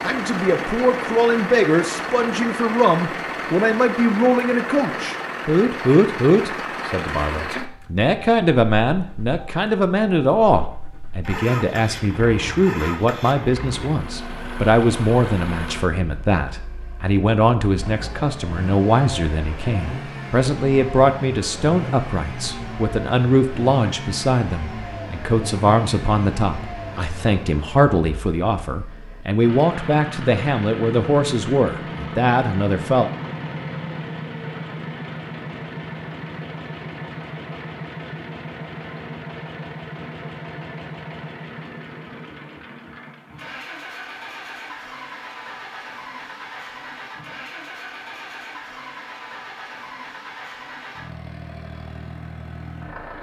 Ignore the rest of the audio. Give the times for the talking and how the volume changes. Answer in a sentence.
You can hear the talking from 0.0 to 33.1 s, at a steady volume.